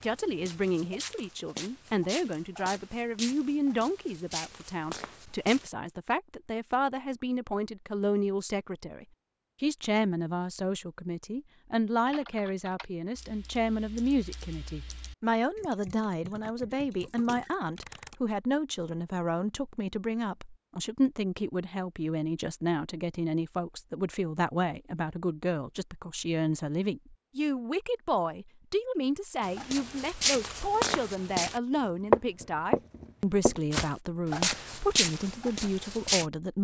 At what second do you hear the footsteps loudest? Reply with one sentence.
The volume of the footsteps peaks at 32 seconds.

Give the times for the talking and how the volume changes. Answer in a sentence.
You can hear the talking from 0.0 to 36.5 s, at a steady volume.